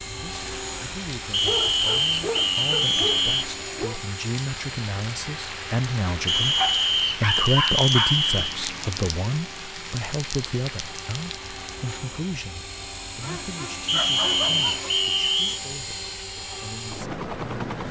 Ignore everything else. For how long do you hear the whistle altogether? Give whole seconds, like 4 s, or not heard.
6 s.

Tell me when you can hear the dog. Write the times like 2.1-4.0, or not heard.
1.4-4.0, 6.5-8.2, 13.2-14.9.